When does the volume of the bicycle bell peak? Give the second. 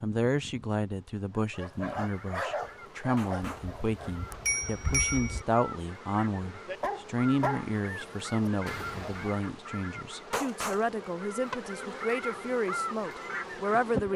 5 s.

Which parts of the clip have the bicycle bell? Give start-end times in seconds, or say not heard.
3.4-5.5.